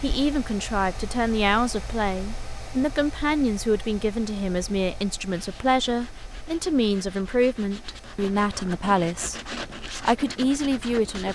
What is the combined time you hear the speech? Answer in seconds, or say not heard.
11 s.